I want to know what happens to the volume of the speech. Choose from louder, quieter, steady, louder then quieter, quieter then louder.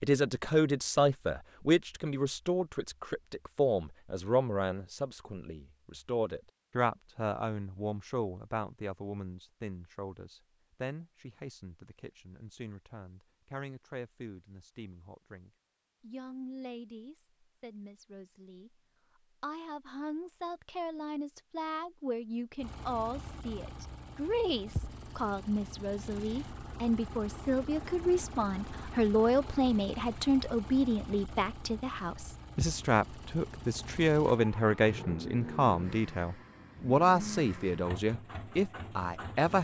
quieter then louder.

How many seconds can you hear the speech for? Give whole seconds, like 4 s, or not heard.
39 s.